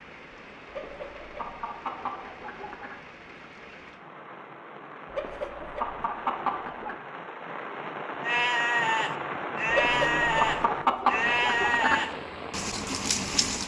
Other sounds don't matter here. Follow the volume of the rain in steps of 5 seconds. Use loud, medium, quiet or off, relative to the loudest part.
medium, loud, loud.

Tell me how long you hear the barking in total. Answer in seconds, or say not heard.
not heard.